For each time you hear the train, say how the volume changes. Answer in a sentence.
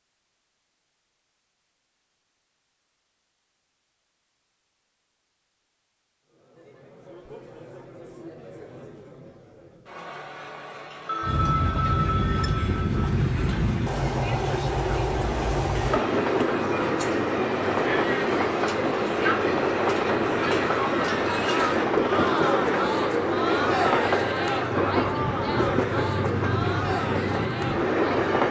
You can hear the train from 11.2 to 28.4 s, at a steady volume.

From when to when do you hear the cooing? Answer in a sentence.
You can't hear the cooing here.